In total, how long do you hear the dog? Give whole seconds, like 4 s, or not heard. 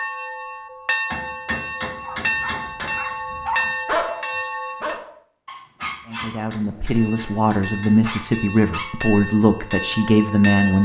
7 s.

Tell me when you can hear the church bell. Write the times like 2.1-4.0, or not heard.
0.0-5.0, 6.9-10.8.